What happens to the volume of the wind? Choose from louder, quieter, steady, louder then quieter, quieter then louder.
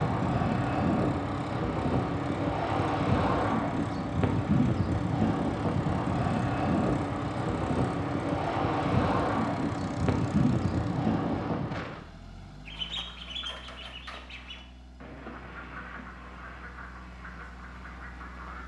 steady.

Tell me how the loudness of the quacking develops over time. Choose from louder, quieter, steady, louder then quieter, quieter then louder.
quieter.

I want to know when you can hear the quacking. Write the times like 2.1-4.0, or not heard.
12.7-18.6.